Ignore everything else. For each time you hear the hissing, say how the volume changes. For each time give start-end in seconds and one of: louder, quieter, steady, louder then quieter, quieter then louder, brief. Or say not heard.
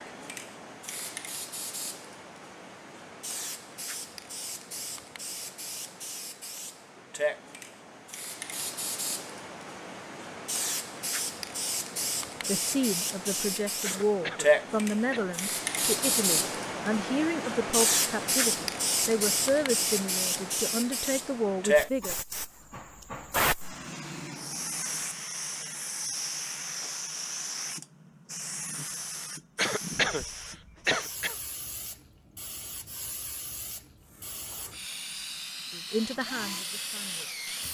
0.0-37.6 louder then quieter.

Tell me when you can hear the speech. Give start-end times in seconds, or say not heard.
12.4-22.1, 35.7-37.5.